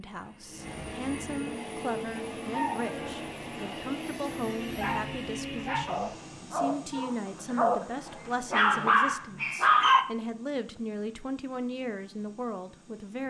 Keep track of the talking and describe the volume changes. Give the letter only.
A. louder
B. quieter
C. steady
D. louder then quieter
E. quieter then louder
C.